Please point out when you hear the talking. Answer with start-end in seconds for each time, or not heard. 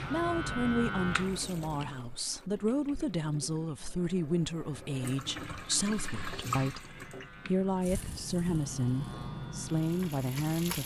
0.1-10.8.